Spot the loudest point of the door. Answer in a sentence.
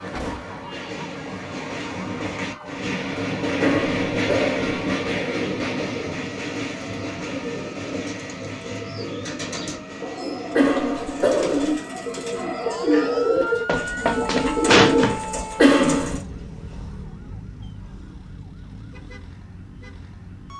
The loudest moment of the door is at 15 seconds.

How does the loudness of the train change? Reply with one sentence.
The loudness of the train goes up, then down.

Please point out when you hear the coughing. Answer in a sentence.
You can hear the coughing from 3.6 to 4.6 s, from 10.6 to 11.8 s and from 15.6 to 16.2 s.